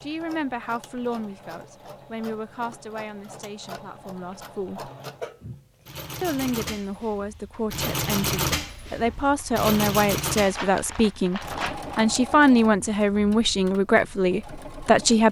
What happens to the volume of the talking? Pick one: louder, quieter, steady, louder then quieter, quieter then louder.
louder.